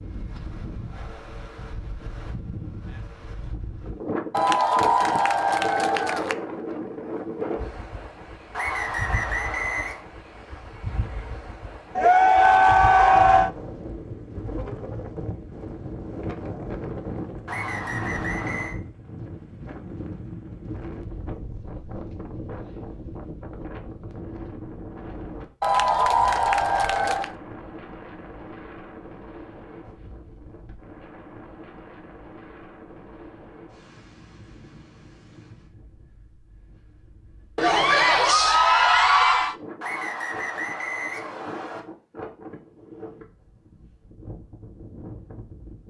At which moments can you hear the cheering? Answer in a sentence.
You can hear the cheering from 4.3 to 6.3 s, from 11.9 to 13.5 s, from 25.6 to 27.4 s and from 37.5 to 39.5 s.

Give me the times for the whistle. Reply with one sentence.
You can hear the whistle from 8.5 to 10.0 s, from 17.4 to 18.8 s and from 39.8 to 41.8 s.